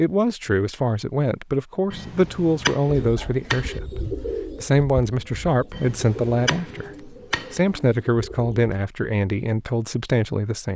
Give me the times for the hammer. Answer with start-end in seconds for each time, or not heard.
1.9-3.8, 5.7-7.6.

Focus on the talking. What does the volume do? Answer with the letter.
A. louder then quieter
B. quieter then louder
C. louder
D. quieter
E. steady
E.